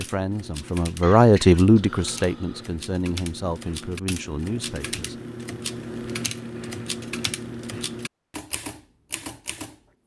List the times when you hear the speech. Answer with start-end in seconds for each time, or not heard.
0.0-5.2.